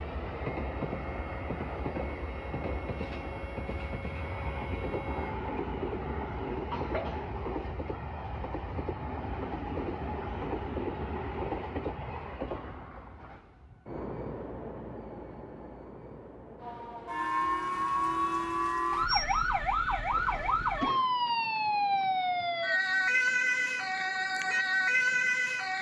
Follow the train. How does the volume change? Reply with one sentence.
The loudness of the train goes down.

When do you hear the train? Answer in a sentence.
The train can be heard from 0.0 to 25.7 s.